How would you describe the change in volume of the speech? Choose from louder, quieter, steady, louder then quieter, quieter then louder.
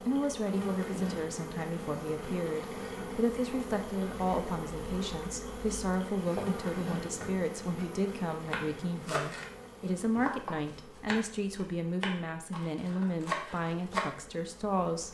steady.